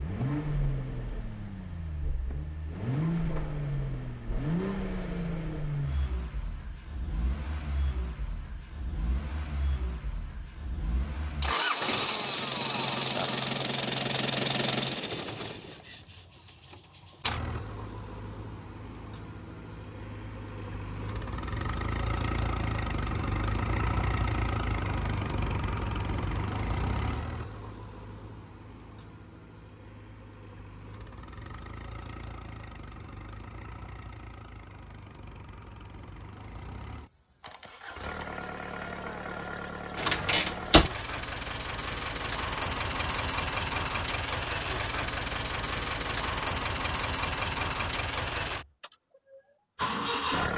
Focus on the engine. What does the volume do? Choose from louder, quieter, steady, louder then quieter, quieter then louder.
quieter then louder.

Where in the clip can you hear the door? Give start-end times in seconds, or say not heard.
40.0-40.9.